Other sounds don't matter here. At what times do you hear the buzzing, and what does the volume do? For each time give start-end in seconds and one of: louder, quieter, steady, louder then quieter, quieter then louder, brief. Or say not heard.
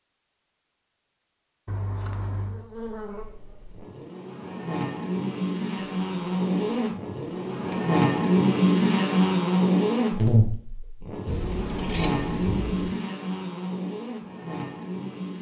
2.5-15.3 louder then quieter.